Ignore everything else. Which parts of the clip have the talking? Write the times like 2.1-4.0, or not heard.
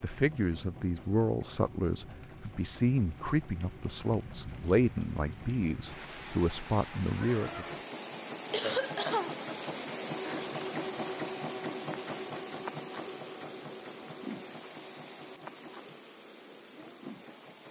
0.0-7.7.